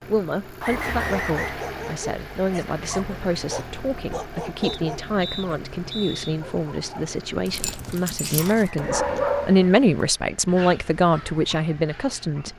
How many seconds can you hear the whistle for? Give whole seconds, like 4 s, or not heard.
3 s.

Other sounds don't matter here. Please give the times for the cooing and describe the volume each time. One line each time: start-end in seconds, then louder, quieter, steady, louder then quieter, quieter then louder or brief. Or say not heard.
not heard.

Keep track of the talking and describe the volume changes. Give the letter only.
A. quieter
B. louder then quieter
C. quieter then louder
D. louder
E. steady
D.